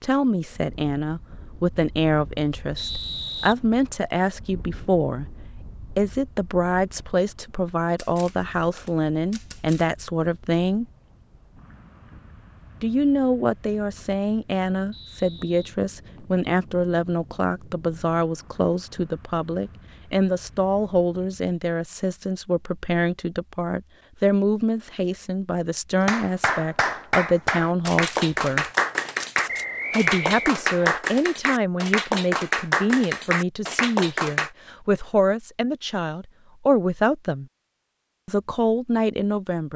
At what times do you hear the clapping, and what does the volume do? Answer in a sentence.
The clapping can be heard from 25.9 to 34.5 s, at a steady volume.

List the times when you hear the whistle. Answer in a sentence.
You can hear the whistle from 2.8 to 4.2 s, from 14.9 to 16.4 s and from 29.4 to 31.0 s.